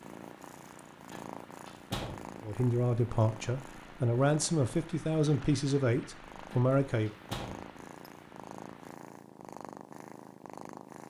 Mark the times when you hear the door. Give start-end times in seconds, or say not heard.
1.1-2.3, 6.5-7.7.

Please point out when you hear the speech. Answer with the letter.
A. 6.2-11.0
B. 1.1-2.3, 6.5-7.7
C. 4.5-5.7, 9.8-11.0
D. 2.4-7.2
D.